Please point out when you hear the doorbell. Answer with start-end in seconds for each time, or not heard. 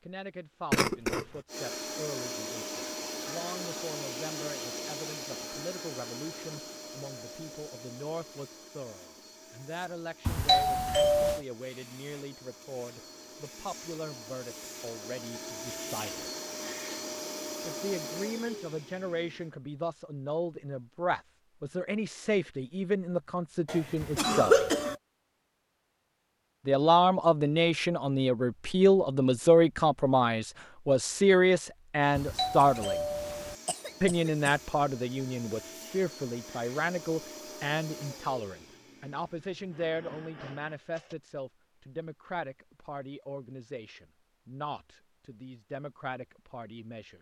10.2-11.4, 24.0-25.0, 32.1-33.5.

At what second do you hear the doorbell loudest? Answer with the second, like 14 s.
11 s.